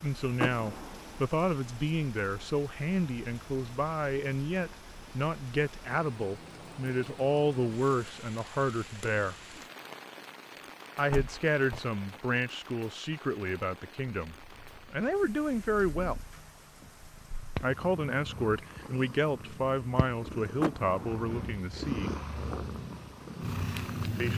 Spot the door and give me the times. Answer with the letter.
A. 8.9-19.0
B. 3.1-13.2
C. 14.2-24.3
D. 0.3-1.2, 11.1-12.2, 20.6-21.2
D.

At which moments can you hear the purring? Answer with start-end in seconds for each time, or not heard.
14.2-24.3.